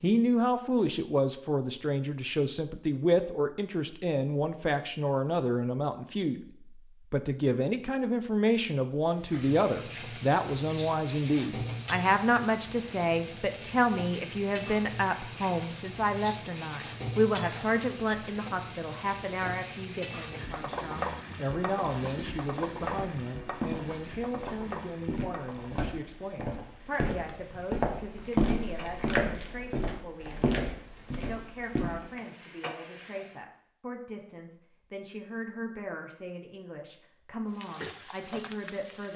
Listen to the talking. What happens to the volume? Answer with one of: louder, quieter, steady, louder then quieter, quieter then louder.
quieter.